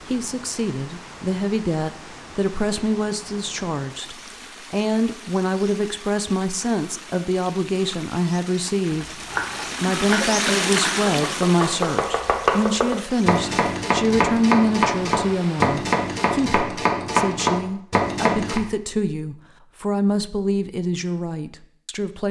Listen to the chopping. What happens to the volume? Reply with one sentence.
The volume of the chopping goes up.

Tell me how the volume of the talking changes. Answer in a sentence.
The loudness of the talking stays about the same.